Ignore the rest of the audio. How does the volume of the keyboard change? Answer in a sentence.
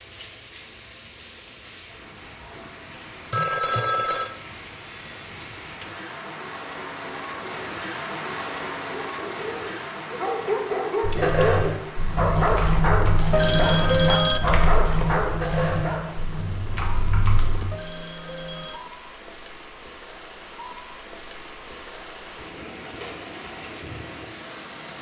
The loudness of the keyboard goes down.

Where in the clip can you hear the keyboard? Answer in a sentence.
The keyboard can be heard from 11.0 to 17.6 s.